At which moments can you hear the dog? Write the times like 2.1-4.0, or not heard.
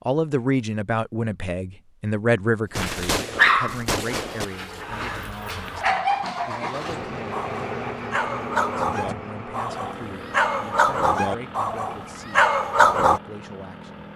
2.8-13.2.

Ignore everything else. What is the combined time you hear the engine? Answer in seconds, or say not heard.
10 s.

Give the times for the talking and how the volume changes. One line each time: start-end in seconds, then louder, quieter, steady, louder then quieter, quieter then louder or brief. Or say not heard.
0.1-14.1 quieter.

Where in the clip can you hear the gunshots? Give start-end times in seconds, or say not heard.
2.7-4.5.